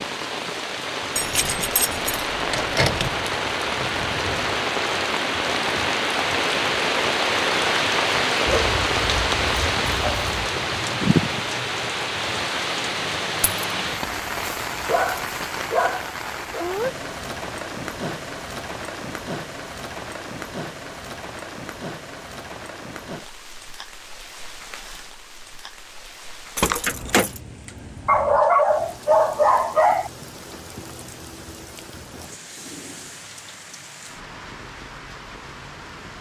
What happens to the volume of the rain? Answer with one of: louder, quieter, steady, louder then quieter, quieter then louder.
quieter.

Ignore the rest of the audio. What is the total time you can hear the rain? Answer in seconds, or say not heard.
36 s.